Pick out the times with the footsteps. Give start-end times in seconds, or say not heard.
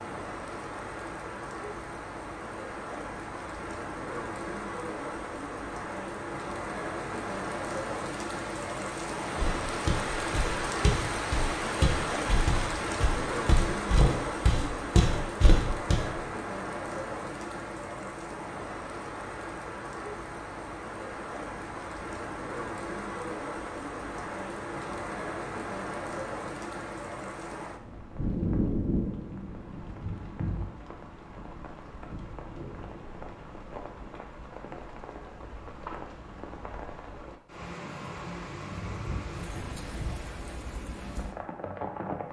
9.3-16.1.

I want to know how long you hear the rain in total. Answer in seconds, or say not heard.
42 s.